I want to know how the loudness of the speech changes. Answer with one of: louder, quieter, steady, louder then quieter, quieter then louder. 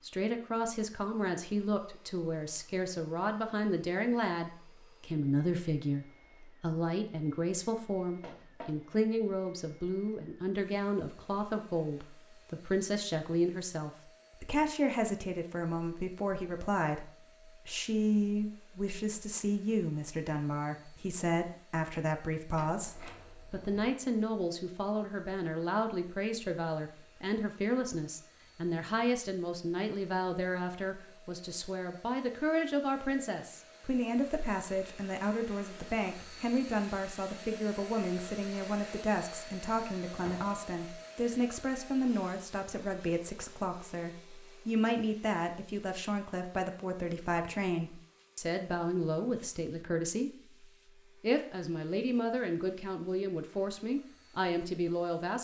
steady.